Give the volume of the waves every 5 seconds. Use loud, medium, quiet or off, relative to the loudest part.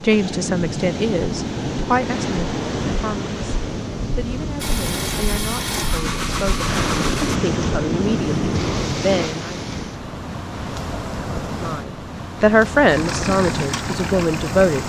loud, loud, medium.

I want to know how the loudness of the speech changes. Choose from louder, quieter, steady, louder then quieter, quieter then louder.
quieter then louder.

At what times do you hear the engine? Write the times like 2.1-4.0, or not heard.
4.5-7.4, 12.8-14.8.